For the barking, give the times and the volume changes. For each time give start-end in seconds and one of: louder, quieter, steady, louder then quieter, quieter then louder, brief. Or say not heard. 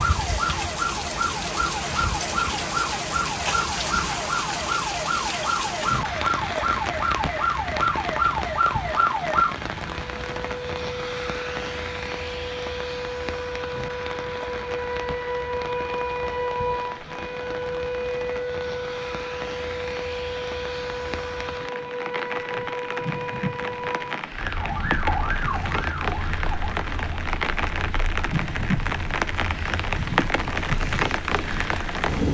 not heard.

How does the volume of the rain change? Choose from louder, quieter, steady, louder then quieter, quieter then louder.
quieter then louder.